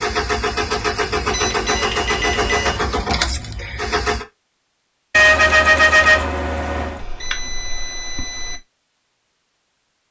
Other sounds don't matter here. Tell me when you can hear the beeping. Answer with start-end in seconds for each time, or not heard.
1.3-2.8, 7.0-8.6.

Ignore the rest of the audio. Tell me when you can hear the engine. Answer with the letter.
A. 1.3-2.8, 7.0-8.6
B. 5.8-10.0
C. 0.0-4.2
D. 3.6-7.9
C.